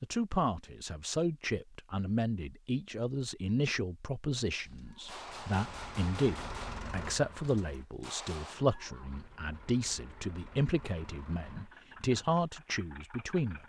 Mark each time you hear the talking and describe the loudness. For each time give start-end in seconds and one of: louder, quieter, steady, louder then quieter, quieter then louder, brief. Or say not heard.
0.0-13.6 steady.